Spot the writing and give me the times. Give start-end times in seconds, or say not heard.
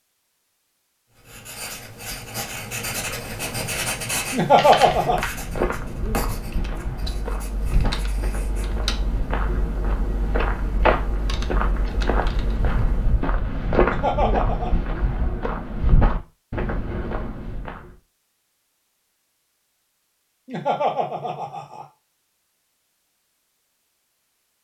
1.1-8.8.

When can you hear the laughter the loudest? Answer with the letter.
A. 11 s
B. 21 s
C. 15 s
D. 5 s
D.